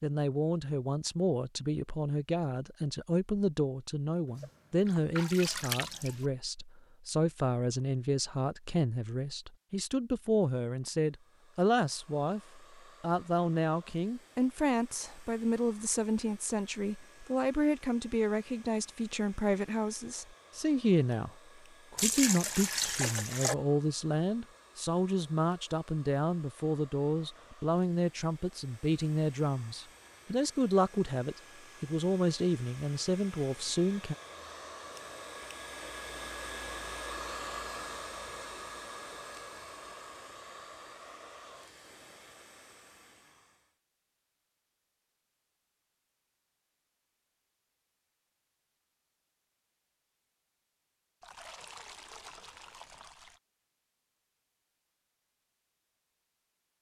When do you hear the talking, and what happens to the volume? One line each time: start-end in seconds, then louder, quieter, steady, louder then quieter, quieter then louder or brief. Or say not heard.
0.0-21.3 steady
21.9-34.1 steady.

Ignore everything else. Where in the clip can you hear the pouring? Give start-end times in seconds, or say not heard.
4.4-6.2, 21.9-23.6, 51.2-53.4.